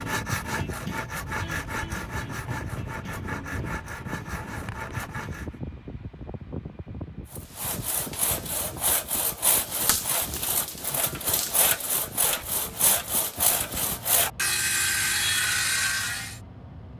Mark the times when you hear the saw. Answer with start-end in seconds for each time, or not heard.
0.0-5.5, 7.2-16.4.